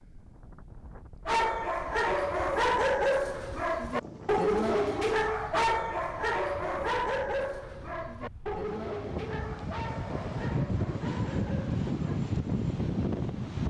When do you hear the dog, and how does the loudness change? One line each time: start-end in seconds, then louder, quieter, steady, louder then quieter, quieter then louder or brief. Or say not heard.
1.2-12.2 quieter.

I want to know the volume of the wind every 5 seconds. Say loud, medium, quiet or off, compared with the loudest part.
quiet, quiet, loud.